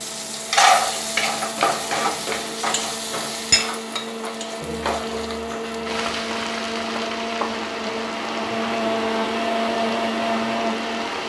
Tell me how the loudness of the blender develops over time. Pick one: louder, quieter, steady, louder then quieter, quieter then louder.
louder.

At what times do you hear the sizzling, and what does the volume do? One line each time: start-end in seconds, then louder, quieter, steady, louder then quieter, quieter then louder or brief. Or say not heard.
0.0-11.2 quieter.